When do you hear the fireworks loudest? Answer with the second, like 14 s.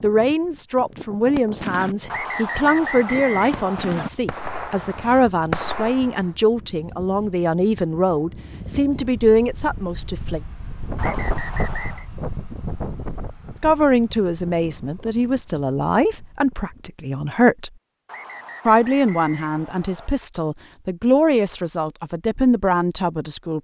6 s.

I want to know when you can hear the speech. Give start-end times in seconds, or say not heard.
0.0-10.4, 13.6-17.7, 18.6-23.6.